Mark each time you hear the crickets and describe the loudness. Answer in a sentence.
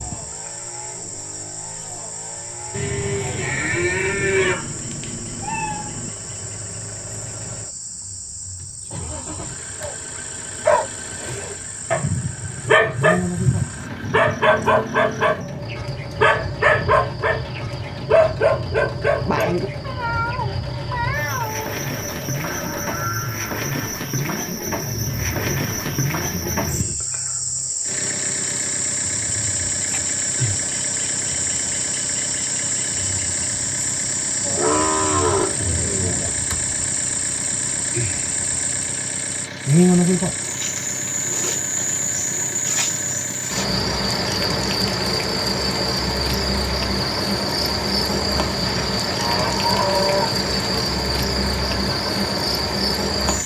You can hear the crickets from 0.0 to 53.4 s, getting louder.